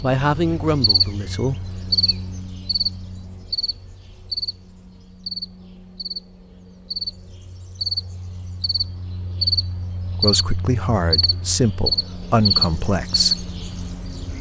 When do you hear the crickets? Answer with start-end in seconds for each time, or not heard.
0.0-14.3.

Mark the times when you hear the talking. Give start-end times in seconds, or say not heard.
0.0-1.6, 10.2-13.3.